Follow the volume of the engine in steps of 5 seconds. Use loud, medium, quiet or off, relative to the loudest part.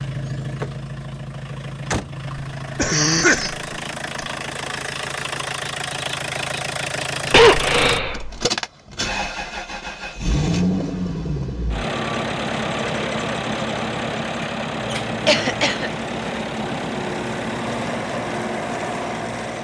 medium, loud, loud, loud.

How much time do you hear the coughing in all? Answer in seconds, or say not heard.
3 s.